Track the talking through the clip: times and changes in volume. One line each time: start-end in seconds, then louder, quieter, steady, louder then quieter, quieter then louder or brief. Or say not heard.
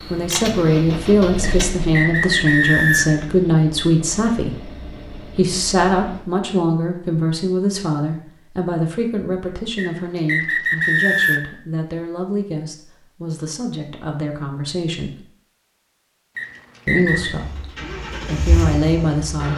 0.1-15.2 quieter
16.9-19.5 brief.